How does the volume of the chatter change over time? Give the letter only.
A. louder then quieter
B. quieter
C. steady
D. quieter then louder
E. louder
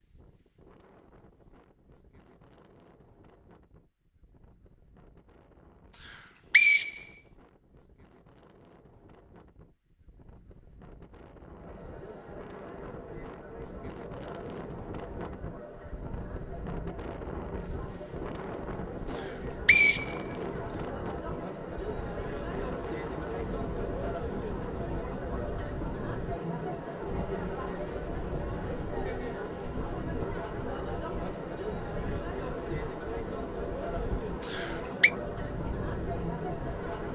E.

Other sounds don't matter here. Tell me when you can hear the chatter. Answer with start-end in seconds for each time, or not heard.
11.5-37.1.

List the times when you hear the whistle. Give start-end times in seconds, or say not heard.
6.0-7.2, 19.1-20.8, 34.4-35.1.